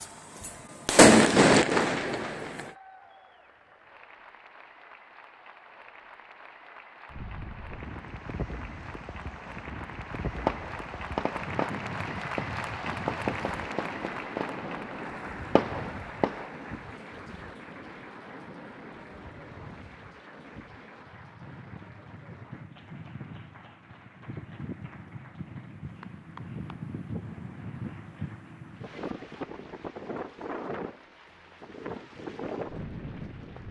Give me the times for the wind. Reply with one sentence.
You can hear the wind from 7.1 to 33.6 s.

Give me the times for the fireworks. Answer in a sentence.
You can hear the fireworks from 0.4 to 2.6 s and from 10.3 to 16.5 s.